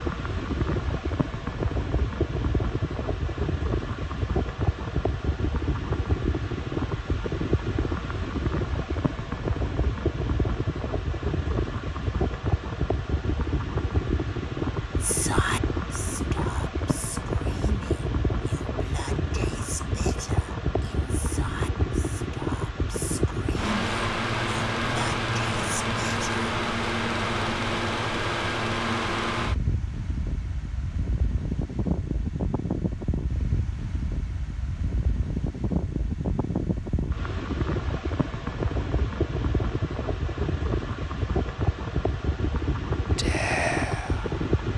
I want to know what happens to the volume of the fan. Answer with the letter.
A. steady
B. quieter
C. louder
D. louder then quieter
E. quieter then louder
A.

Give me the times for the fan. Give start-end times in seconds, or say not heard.
0.0-44.7.